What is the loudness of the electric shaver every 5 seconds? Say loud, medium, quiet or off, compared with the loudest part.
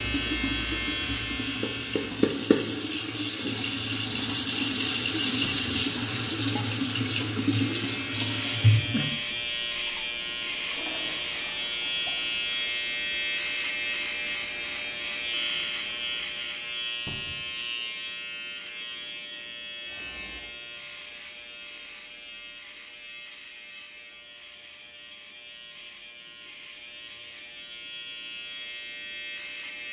loud, loud, loud, loud, quiet, medium.